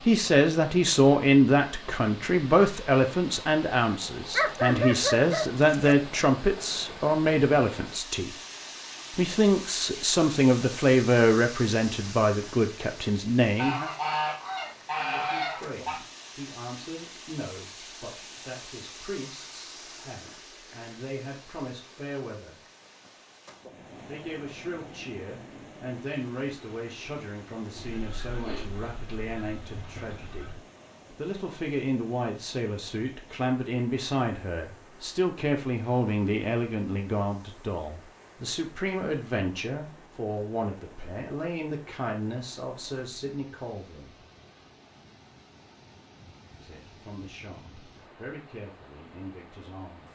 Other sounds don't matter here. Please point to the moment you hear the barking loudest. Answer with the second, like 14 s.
5 s.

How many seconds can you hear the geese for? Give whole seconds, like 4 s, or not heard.
5 s.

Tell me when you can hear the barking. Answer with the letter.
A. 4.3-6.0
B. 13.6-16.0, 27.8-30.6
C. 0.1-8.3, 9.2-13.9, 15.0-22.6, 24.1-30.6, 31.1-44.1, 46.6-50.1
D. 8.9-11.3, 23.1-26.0
A.